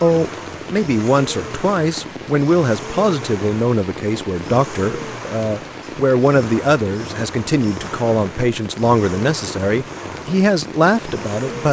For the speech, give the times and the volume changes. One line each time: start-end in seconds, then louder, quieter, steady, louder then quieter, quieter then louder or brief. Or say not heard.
0.0-11.6 steady.